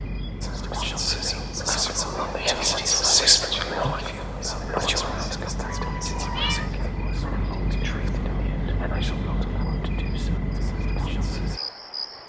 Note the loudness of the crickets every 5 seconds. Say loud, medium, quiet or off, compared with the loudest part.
medium, loud, loud.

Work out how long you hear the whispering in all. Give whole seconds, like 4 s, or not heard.
11 s.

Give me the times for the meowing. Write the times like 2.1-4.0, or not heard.
5.7-6.7.